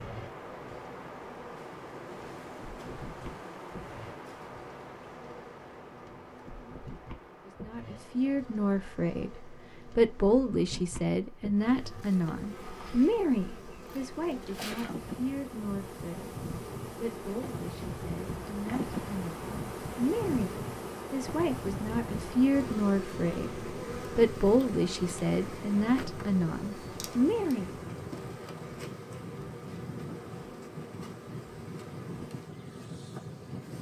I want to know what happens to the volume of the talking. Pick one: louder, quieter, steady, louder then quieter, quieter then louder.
quieter then louder.